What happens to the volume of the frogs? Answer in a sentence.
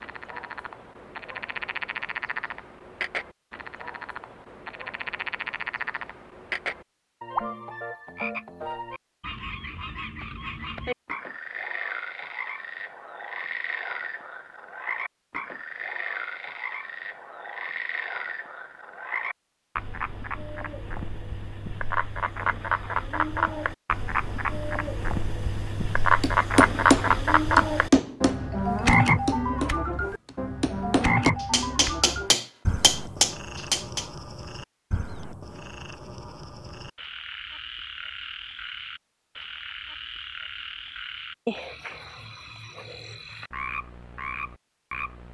The volume of the frogs goes up, then down.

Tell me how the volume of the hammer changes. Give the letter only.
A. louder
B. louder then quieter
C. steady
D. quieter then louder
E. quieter
D.